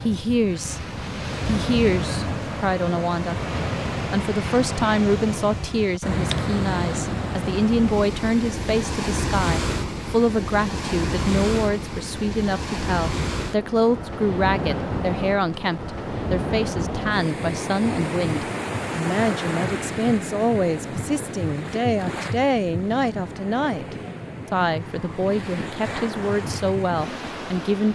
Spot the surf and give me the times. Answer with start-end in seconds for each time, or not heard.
0.0-27.8.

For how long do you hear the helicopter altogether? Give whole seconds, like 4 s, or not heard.
not heard.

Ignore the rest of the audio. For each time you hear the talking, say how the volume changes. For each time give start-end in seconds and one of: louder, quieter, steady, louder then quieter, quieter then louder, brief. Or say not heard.
0.0-0.8 brief
1.4-27.8 steady.